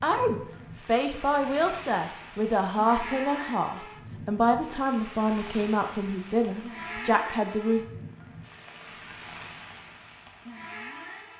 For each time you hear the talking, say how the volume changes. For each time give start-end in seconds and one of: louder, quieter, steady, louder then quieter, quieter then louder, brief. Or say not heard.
0.0-7.8 steady.